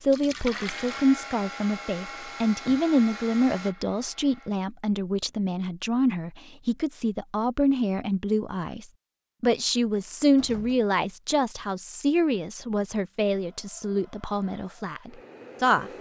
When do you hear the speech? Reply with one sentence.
You can hear the speech from 0.0 to 15.9 s.